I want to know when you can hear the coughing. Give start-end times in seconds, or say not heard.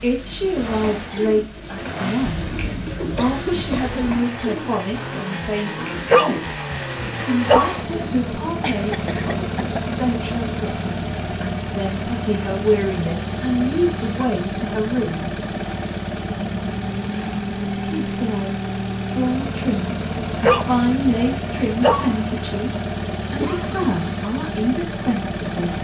2.2-4.2, 8.6-10.0, 23.4-23.9.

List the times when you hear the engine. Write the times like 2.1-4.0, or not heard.
0.0-25.7.